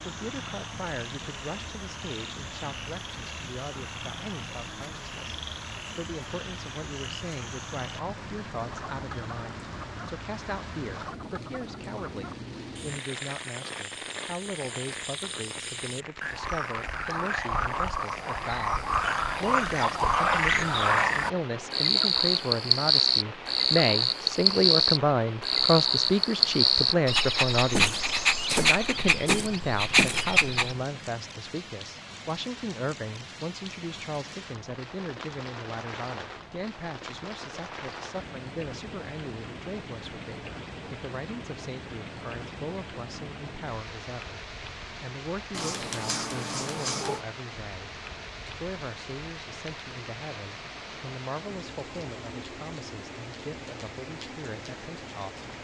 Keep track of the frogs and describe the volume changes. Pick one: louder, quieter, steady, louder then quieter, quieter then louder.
louder.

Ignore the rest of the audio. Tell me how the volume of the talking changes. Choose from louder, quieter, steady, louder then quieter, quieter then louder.
louder then quieter.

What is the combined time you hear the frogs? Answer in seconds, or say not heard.
31 s.